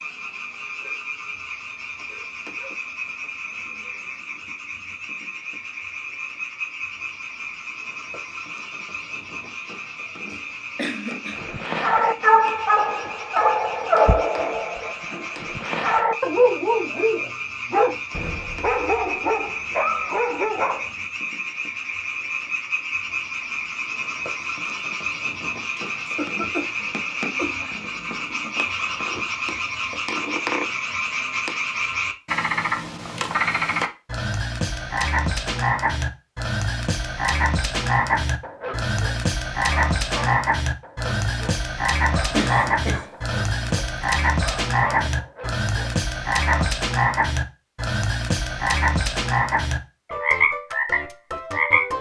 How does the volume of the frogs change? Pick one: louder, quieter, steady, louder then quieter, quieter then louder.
louder.